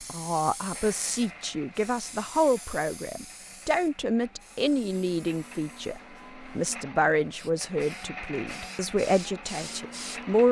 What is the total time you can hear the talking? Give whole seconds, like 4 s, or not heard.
10 s.